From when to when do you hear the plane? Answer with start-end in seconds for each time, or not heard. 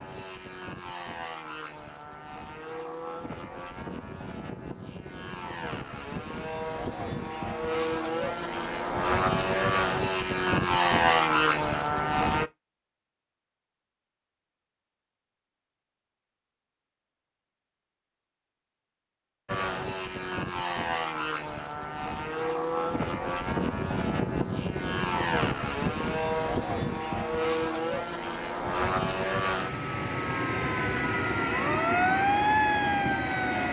0.0-12.5, 19.4-33.6.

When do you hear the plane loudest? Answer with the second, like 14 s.
11 s.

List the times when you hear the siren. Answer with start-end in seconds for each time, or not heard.
29.9-33.6.